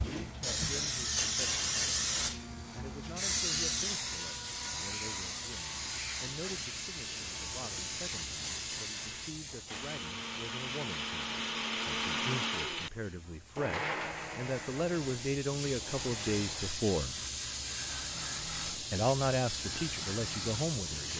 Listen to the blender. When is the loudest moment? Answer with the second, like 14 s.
12 s.